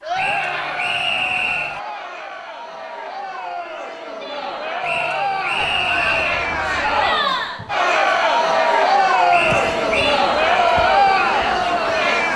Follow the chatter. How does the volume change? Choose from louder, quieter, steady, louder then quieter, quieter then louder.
louder.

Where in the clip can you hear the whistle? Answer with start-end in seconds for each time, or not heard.
0.1-1.8, 4.8-6.5, 9.3-10.2.